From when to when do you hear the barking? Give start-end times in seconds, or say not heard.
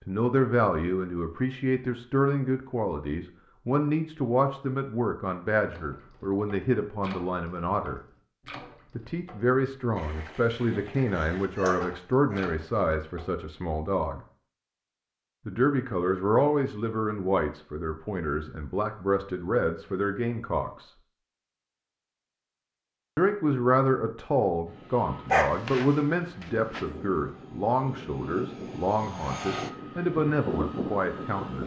11.1-12.5, 25.3-26.9.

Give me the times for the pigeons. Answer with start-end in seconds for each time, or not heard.
not heard.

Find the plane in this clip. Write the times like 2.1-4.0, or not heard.
24.6-31.6.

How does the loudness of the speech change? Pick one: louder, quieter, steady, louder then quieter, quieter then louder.
steady.